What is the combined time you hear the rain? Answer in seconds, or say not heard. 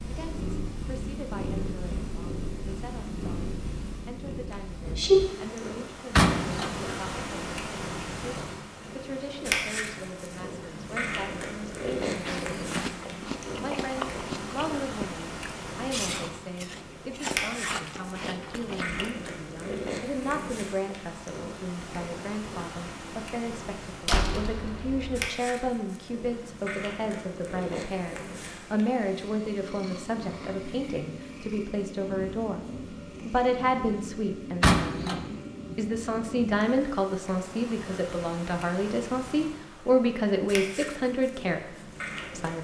not heard.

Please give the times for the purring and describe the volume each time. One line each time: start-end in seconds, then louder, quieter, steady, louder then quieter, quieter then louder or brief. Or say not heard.
0.0-42.5 quieter.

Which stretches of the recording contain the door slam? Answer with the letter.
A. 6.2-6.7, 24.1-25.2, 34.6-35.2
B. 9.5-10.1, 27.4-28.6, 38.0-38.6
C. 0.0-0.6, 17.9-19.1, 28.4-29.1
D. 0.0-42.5
A.